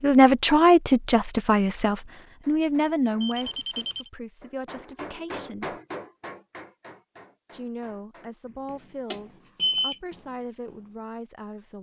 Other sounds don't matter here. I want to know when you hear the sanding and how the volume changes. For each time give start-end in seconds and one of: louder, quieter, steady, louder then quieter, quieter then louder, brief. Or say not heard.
not heard.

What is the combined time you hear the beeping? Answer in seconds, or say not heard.
2 s.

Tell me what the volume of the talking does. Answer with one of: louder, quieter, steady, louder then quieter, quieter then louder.
quieter.